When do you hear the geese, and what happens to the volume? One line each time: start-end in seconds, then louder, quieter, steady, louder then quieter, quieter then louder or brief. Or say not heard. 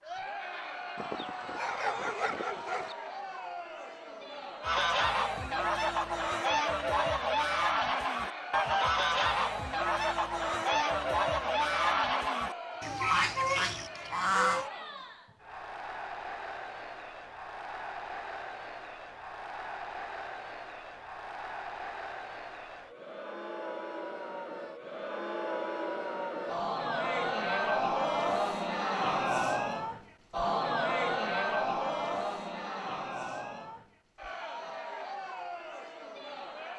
4.6-14.7 steady.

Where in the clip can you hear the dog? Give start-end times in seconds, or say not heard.
0.9-3.0.